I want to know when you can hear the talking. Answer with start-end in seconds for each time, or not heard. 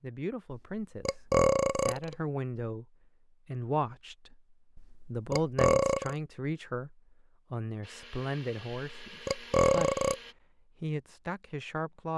0.0-10.0, 10.8-12.1.